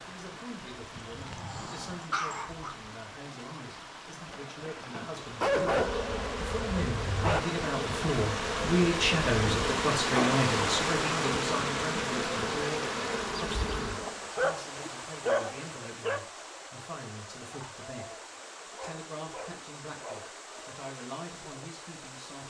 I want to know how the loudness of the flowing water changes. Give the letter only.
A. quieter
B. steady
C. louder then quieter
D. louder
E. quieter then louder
C.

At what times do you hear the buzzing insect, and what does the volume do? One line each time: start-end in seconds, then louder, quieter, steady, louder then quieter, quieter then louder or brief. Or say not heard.
4.3-14.3 steady.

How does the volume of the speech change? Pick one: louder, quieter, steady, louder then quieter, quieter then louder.
louder then quieter.